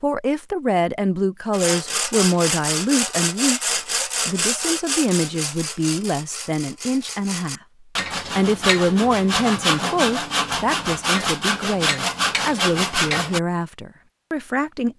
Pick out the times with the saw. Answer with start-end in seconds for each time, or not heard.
1.5-13.4.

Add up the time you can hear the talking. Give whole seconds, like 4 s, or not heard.
14 s.